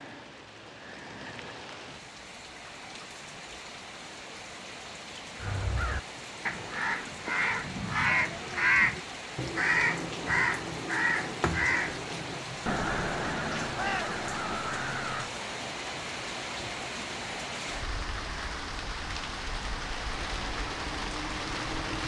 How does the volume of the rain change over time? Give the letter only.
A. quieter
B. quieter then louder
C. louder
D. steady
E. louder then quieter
C.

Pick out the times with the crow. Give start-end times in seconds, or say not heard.
5.3-15.3.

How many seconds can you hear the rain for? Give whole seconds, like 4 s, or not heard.
22 s.